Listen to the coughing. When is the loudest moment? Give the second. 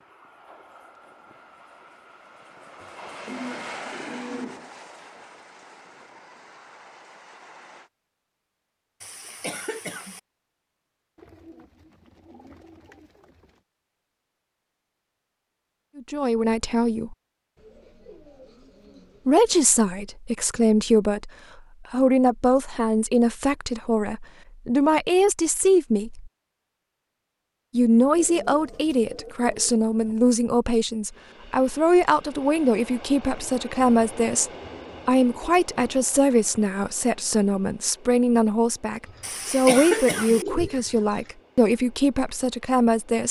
40 s.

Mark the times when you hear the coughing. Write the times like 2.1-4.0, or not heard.
9.0-10.2, 39.2-40.5.